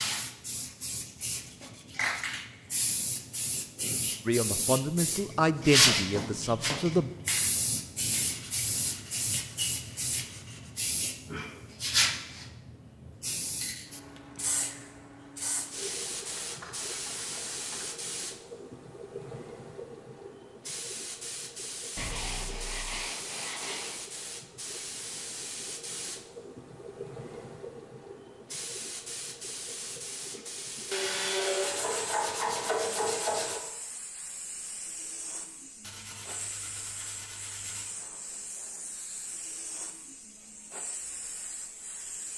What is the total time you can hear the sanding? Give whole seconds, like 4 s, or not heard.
13 s.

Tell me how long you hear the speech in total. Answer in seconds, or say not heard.
3 s.